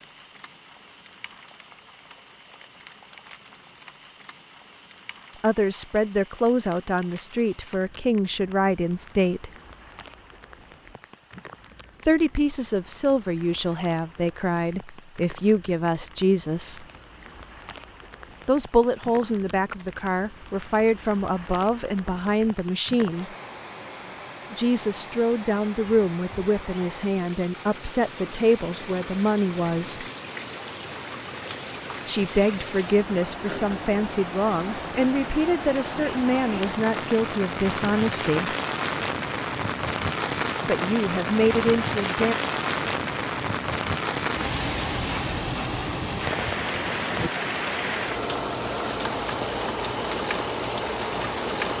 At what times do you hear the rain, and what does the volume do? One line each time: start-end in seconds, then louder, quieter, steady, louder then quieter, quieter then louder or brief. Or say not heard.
0.0-51.7 louder.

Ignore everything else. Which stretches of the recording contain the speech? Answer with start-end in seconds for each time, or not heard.
5.4-9.5, 12.1-16.9, 18.4-23.2, 24.5-30.1, 32.0-38.5, 40.6-42.4.